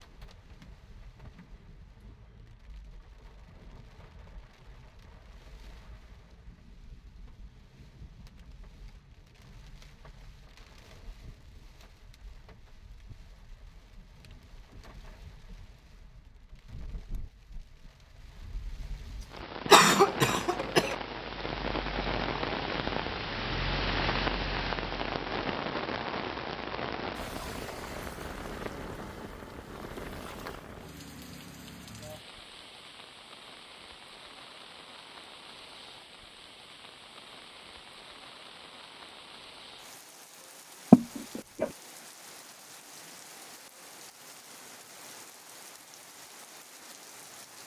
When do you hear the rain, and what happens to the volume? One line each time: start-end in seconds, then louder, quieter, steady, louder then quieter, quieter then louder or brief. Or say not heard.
0.0-47.6 louder then quieter.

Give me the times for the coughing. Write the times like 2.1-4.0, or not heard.
19.7-20.9, 40.9-41.7.